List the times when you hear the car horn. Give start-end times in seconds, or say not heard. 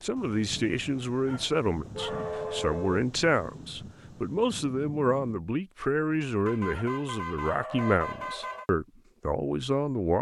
1.9-3.1, 6.2-8.7.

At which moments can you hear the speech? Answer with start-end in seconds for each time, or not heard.
0.0-10.1.